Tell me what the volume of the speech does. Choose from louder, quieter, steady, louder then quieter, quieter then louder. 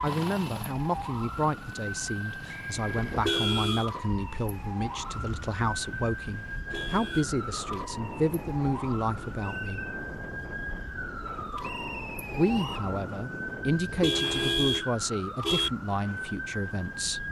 steady.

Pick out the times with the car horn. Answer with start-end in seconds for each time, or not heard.
3.0-3.9, 6.5-7.2, 13.8-15.7.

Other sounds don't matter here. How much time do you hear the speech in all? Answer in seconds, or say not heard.
15 s.